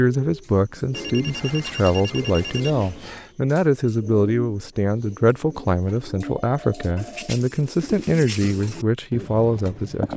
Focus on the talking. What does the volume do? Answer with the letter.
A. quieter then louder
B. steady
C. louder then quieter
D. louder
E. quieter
B.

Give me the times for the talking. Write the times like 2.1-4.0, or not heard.
0.0-10.1.